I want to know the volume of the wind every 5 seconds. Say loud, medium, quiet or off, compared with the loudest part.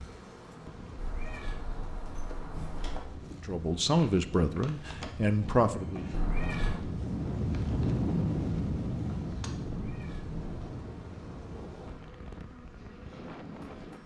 quiet, loud, medium.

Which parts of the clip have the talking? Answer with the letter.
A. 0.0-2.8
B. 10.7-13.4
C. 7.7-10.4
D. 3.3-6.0
D.